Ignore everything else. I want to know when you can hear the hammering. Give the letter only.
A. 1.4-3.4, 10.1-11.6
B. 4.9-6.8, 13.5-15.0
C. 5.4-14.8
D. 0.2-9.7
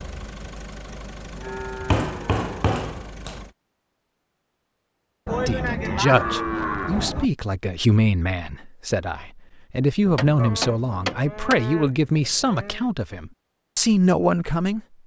A.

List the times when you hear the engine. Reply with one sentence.
The engine can be heard from 0.0 to 3.5 s.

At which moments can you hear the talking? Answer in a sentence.
The talking can be heard from 5.4 to 14.8 s.